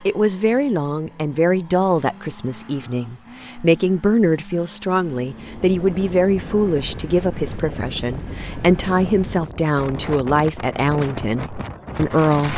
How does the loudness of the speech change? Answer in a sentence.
The loudness of the speech stays about the same.